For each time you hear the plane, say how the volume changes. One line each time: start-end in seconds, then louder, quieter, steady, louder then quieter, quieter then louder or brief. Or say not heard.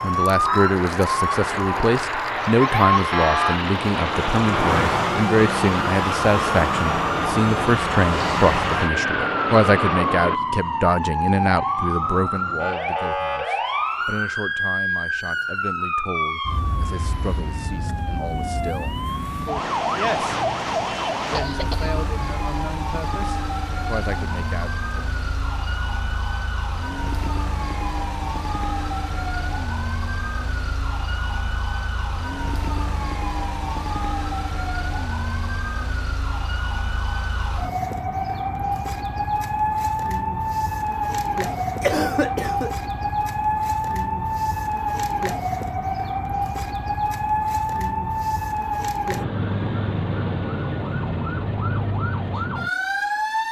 0.0-10.4 steady.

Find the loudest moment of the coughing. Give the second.
42 s.